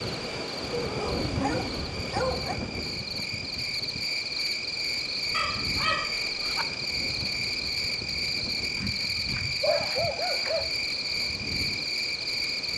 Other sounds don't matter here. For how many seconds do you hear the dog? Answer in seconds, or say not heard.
5 s.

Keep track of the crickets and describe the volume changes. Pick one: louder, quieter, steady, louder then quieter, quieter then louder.
louder.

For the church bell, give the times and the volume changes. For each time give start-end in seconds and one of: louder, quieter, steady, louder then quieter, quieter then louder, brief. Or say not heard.
not heard.